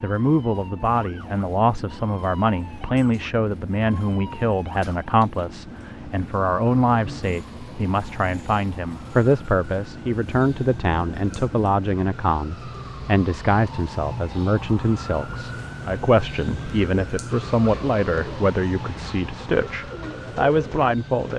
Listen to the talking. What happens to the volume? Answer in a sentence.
The loudness of the talking stays about the same.